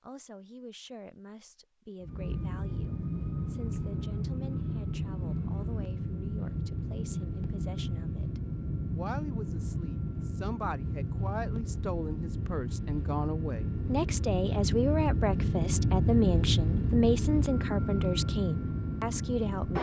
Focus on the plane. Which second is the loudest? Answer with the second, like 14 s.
16 s.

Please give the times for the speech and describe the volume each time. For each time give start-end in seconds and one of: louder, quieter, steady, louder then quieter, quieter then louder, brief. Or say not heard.
0.0-19.7 louder.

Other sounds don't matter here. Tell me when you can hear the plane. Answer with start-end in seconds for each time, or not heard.
2.0-19.7.